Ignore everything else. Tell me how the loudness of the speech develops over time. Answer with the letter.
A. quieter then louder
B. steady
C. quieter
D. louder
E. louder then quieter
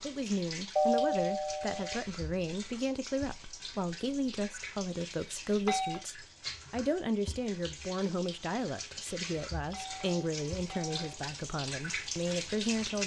B.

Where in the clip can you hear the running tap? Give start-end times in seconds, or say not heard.
0.0-13.0.